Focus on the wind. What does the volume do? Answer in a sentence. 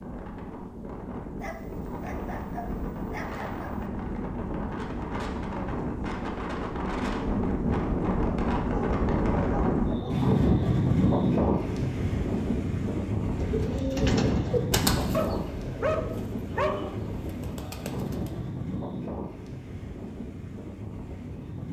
The loudness of the wind goes up, then down.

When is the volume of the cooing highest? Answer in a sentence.
The loudest moment of the cooing is at 15 seconds.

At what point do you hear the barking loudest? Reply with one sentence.
The volume of the barking peaks at 16 seconds.